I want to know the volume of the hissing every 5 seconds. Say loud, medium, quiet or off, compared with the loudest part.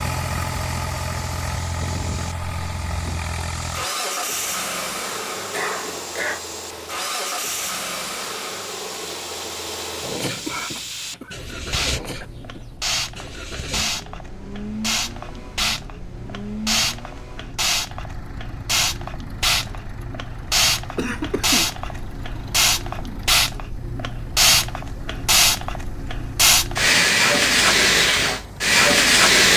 quiet, quiet, quiet, medium, medium, loud.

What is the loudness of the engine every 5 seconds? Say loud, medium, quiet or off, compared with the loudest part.
loud, loud, medium, medium, quiet, quiet.